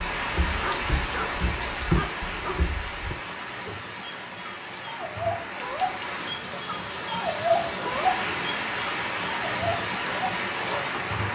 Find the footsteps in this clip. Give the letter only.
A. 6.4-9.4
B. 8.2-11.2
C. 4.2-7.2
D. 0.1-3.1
D.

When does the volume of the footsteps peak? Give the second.
2 s.